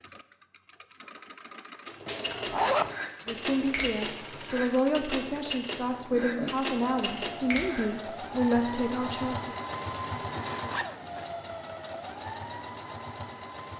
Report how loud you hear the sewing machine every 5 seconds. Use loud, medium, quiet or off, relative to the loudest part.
medium, loud, loud.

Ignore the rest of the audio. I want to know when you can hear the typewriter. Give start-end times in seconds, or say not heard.
1.9-7.9.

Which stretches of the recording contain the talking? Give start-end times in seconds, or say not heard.
3.2-9.6.